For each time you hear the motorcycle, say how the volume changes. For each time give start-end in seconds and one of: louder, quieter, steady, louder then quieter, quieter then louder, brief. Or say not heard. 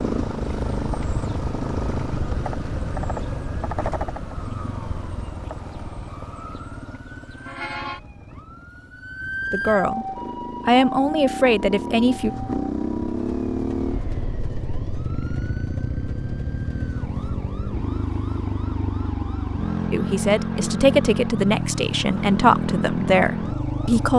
0.0-24.1 quieter then louder.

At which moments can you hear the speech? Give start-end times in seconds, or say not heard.
9.5-10.1, 10.7-12.3, 19.9-24.1.